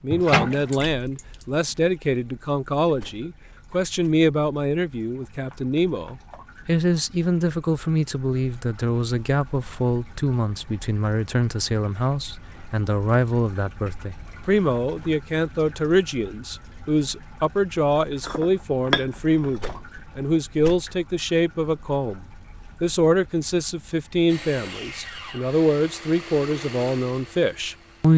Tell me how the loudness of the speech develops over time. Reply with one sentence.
The volume of the speech stays about the same.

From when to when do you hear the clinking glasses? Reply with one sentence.
The clinking glasses can be heard from 18.2 to 19.8 s.